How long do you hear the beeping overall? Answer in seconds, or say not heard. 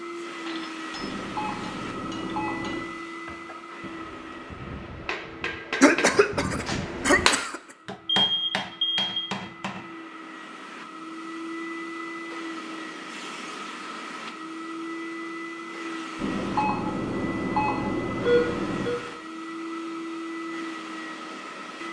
6 s.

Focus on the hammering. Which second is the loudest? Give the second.
7 s.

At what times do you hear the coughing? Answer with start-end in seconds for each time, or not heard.
5.8-7.6.